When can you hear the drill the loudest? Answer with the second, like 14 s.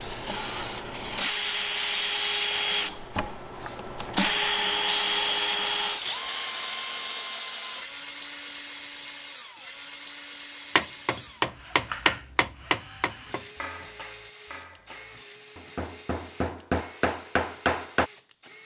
5 s.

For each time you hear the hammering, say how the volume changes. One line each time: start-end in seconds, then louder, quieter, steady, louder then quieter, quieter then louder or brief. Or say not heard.
10.8-18.1 quieter then louder.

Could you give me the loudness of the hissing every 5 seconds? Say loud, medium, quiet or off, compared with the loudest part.
loud, loud, off, off.